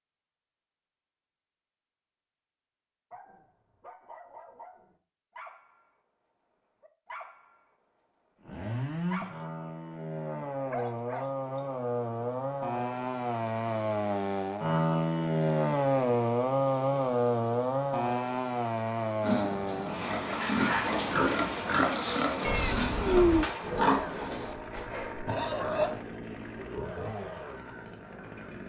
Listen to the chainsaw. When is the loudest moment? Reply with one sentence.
The loudest moment of the chainsaw is at 16 seconds.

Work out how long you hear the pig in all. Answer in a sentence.
The pig can be heard for 7 seconds in total.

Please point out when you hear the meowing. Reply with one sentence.
You can hear the meowing from 22.4 to 23.4 s.